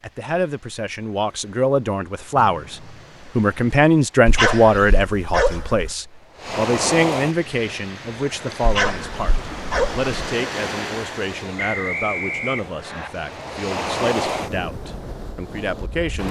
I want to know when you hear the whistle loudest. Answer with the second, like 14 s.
12 s.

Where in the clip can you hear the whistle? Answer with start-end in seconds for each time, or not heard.
2.5-3.4, 11.6-13.1.